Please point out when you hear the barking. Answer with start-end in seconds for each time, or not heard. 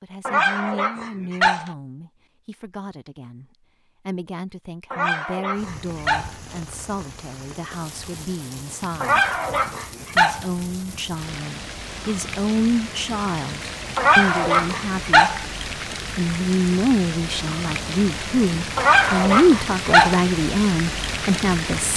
0.2-1.7, 4.9-6.3, 9.0-10.4, 13.9-15.4, 18.8-20.2.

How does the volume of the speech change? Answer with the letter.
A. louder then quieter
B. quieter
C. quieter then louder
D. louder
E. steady
D.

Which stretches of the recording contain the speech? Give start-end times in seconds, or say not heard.
0.0-3.5, 4.0-9.3, 10.2-15.3, 16.1-21.9.